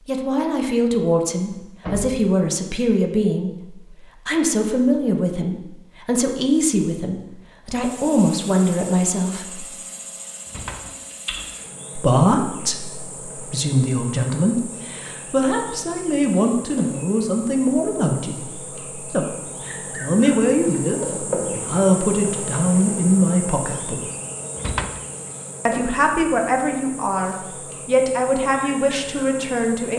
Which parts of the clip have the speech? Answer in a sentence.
You can hear the speech from 0.1 to 9.7 s, from 11.9 to 24.1 s and from 25.6 to 29.9 s.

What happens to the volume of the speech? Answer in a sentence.
The loudness of the speech stays about the same.